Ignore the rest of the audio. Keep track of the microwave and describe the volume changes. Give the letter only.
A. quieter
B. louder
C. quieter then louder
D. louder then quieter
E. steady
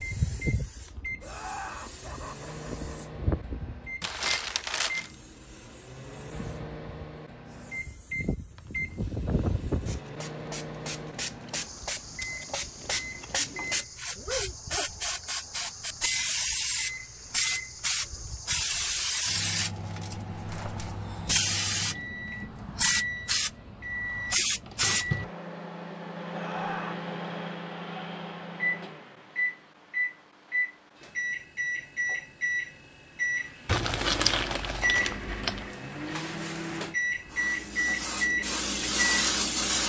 B.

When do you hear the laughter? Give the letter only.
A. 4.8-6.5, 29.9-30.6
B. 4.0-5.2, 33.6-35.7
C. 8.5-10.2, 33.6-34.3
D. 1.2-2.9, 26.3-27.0
D.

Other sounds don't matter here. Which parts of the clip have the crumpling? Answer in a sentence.
You can hear the crumpling from 4.0 to 5.2 s and from 33.6 to 35.7 s.